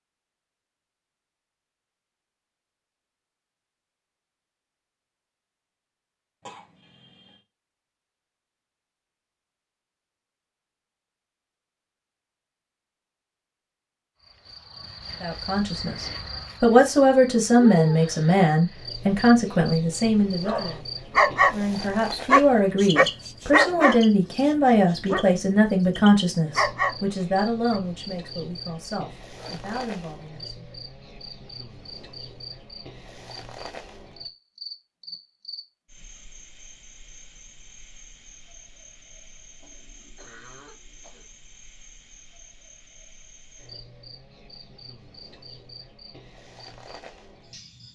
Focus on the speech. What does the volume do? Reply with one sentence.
The loudness of the speech goes down.